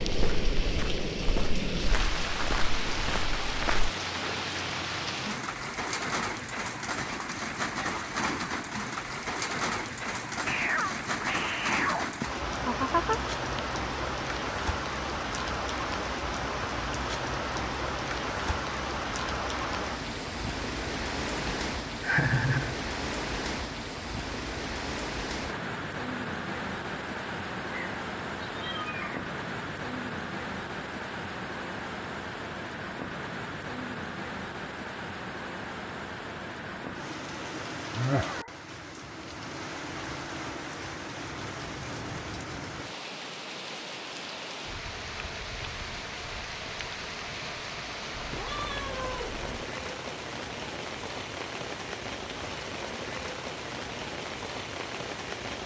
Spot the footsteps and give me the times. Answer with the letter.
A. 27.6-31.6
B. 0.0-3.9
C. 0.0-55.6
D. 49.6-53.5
B.